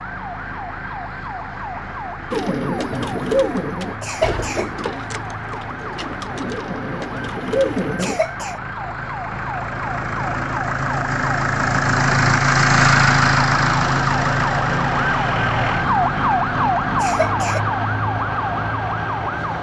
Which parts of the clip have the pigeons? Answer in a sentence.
The pigeons can be heard from 2.3 to 8.2 s.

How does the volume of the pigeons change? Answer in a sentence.
The volume of the pigeons goes down, then up.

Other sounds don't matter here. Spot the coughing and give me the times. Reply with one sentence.
The coughing can be heard from 4.0 to 4.7 s, from 8.0 to 8.6 s and from 16.9 to 17.6 s.